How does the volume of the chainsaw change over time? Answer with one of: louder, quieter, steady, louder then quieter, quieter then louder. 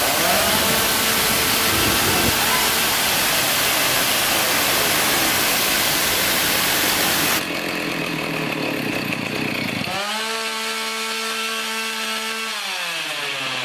steady.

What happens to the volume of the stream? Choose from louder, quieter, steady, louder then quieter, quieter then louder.
steady.